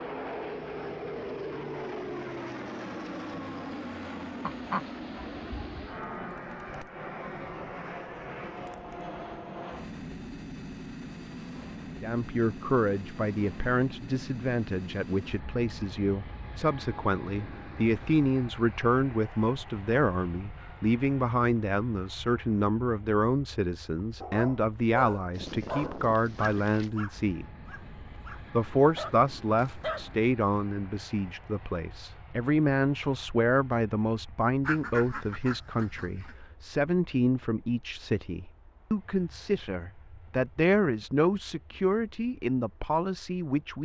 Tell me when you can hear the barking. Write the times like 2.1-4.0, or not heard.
24.2-30.2.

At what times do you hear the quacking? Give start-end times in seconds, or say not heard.
4.4-6.0, 25.3-26.9, 34.6-36.4.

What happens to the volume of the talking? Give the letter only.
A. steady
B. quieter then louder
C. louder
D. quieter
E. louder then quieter
A.